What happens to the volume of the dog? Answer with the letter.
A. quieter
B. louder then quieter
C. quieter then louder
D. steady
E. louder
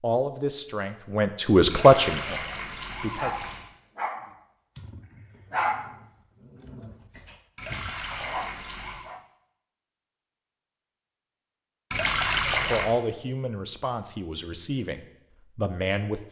C.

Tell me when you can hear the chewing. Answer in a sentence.
You can't hear the chewing here.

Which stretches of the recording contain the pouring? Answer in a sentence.
The pouring can be heard from 1.7 to 3.7 s, from 7.5 to 9.1 s and from 11.9 to 12.9 s.